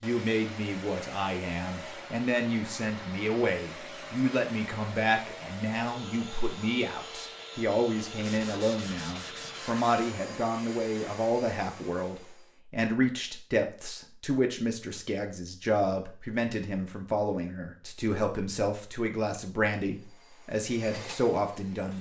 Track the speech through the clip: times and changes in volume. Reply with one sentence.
The speech can be heard from 0.0 to 21.9 s, at a steady volume.